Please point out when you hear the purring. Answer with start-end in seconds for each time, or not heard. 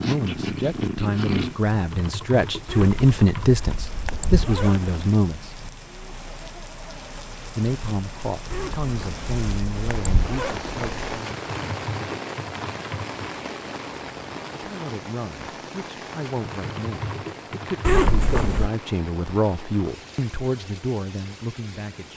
0.0-1.6.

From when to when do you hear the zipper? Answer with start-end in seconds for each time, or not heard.
2.6-5.0, 8.5-11.2, 17.8-18.7.